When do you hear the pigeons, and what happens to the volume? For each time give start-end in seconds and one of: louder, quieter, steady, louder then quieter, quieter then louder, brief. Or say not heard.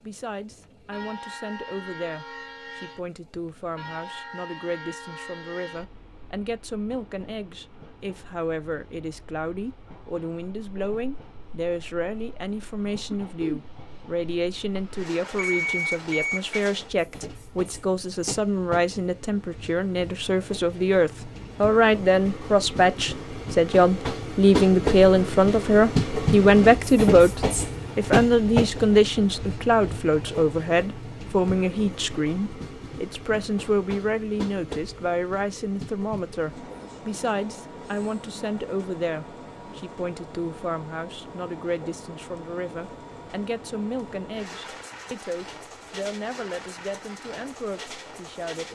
not heard.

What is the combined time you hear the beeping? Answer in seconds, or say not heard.
2 s.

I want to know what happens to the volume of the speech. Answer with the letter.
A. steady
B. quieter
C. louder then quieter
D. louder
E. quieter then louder
C.